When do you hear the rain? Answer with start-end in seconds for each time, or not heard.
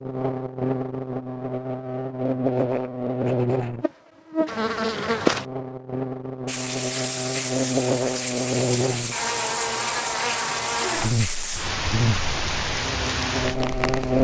6.5-14.1.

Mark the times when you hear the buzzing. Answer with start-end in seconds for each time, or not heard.
0.0-14.1.